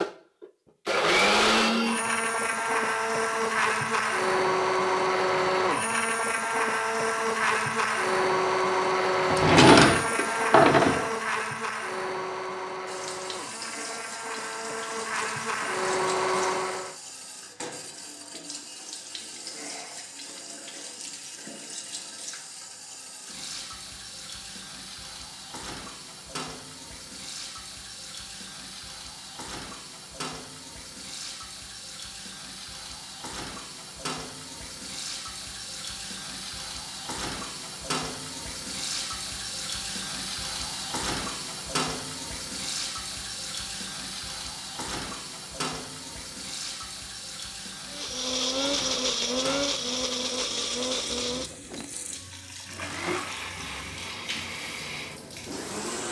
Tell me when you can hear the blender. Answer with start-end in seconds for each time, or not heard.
0.0-16.9, 47.9-56.0.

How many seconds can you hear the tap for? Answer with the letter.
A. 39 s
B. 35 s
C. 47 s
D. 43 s
D.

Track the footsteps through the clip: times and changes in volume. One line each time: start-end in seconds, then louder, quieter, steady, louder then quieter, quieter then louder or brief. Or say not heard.
not heard.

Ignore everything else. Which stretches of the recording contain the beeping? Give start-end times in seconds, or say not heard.
not heard.